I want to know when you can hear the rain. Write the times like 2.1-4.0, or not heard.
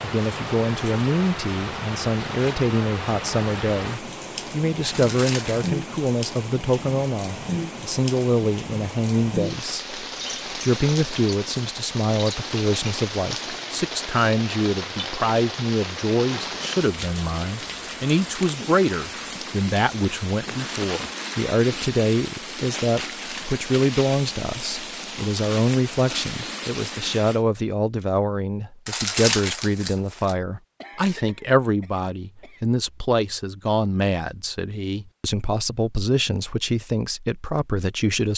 0.0-27.4.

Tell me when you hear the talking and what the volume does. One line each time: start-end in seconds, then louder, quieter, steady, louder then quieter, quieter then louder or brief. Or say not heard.
0.0-38.3 steady.